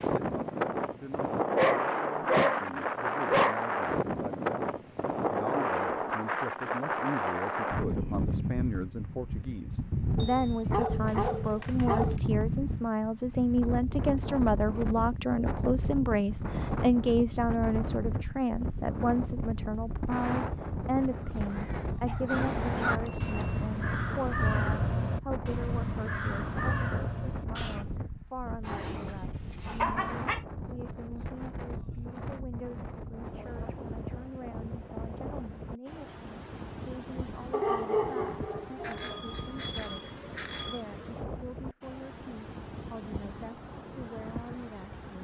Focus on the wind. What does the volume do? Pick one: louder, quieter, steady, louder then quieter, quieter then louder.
quieter.